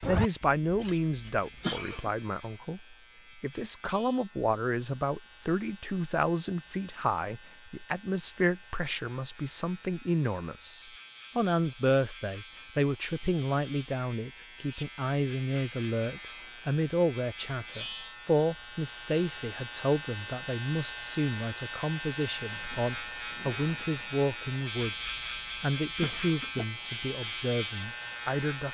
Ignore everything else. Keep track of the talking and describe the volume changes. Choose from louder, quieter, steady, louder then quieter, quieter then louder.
steady.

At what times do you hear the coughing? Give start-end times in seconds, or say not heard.
0.4-2.1, 24.9-26.6.